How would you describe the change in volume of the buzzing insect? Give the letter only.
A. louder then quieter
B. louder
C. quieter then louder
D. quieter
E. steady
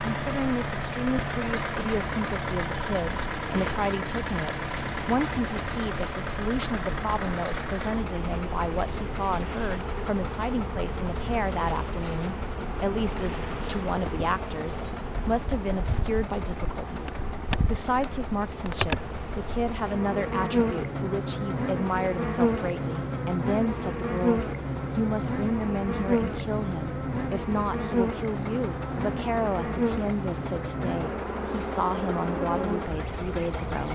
B.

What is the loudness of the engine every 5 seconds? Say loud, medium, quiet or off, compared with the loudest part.
loud, loud, medium, medium, medium, medium, medium.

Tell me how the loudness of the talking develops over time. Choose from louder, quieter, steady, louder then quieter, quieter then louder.
steady.